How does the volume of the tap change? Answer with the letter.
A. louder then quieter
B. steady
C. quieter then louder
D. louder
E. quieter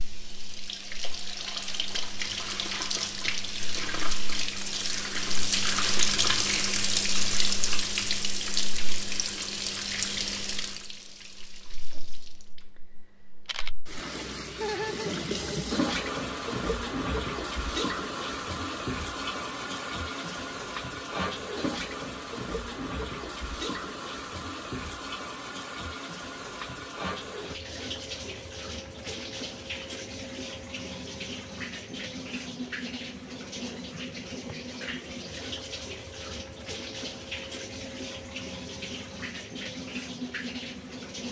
E.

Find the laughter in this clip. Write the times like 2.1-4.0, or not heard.
14.6-15.2.